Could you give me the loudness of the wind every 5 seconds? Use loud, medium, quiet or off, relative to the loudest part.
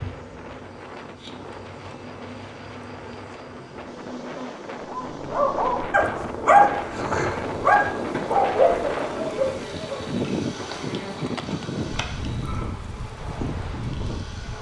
medium, loud, loud.